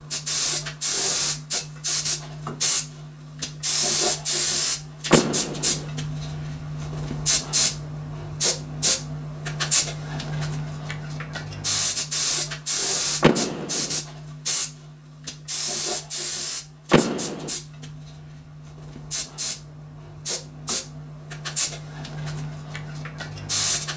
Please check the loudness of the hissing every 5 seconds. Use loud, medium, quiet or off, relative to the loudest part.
loud, loud, loud, medium, medium.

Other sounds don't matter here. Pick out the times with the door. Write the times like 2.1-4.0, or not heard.
5.1-5.9, 13.2-14.0, 16.9-17.5.